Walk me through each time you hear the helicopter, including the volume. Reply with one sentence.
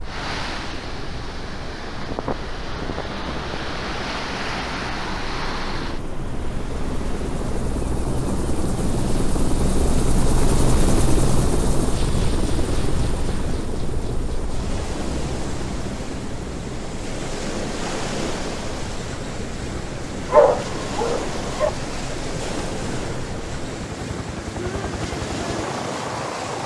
You can hear the helicopter from 0.0 to 26.6 s, getting louder then quieter.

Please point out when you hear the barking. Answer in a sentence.
You can hear the barking from 20.3 to 21.7 s.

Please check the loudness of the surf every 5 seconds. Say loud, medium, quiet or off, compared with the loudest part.
loud, medium, medium, loud, loud, loud.